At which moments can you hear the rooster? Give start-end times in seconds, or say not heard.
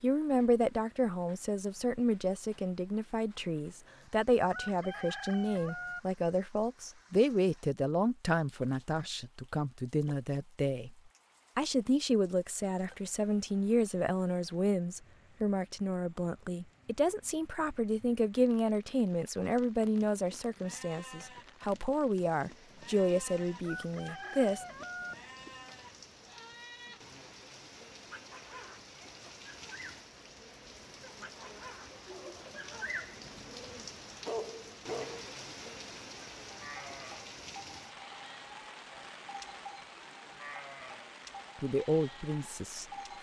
4.5-6.0, 23.6-25.1.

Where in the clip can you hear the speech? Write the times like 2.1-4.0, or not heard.
0.0-10.9, 11.6-24.6, 41.6-42.9.